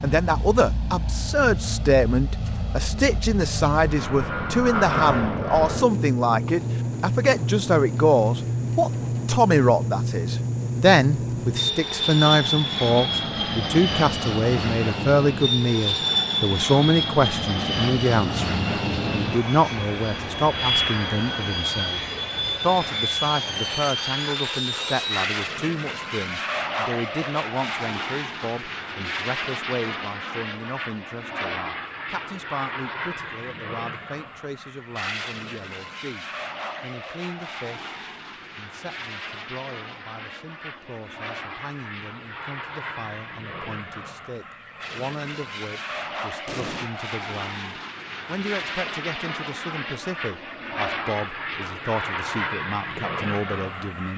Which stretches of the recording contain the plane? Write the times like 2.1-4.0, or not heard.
0.0-54.1.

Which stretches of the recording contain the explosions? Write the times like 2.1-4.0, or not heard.
46.5-46.9.